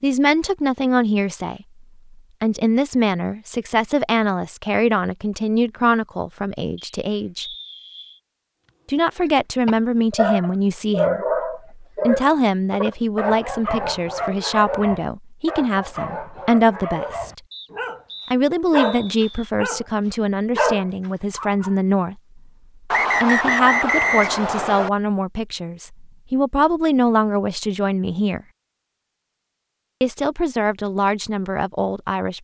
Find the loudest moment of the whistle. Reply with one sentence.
The loudest moment of the whistle is at 24 seconds.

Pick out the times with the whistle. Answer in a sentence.
The whistle can be heard from 6.8 to 8.2 s, from 17.5 to 19.5 s and from 22.9 to 24.9 s.